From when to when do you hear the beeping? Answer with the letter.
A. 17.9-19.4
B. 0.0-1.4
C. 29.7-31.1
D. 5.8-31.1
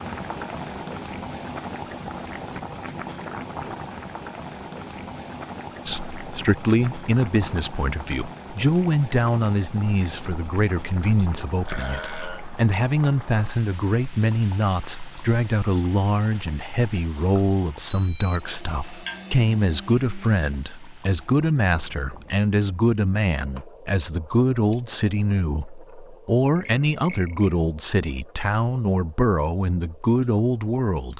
A.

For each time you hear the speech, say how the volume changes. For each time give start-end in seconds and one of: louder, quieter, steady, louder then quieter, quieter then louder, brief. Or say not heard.
5.8-31.1 steady.